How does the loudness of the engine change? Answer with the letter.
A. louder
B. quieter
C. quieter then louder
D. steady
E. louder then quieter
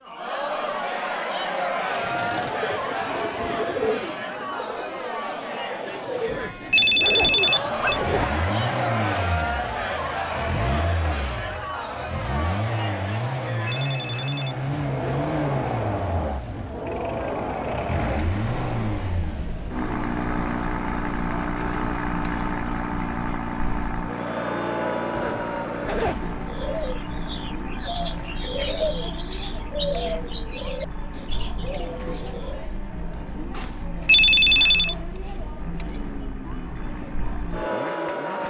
B.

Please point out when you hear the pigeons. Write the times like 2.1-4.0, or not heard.
1.9-8.0, 26.4-32.8.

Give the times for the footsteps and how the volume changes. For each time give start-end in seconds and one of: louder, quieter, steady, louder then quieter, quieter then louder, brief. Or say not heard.
not heard.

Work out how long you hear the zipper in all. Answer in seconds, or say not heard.
3 s.